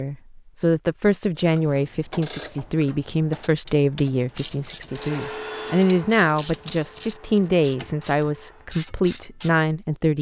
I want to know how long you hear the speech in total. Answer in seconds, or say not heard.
10 s.